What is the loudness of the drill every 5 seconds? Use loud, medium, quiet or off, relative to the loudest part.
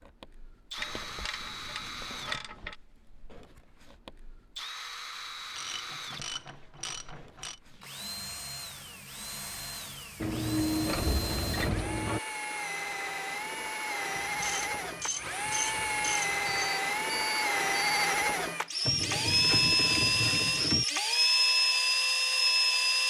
quiet, quiet, medium, loud, loud.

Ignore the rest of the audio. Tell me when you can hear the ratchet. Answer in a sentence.
The ratchet can be heard from 0.8 to 2.8 s, from 5.5 to 7.5 s, from 10.2 to 12.2 s, from 14.3 to 16.8 s and from 18.9 to 20.9 s.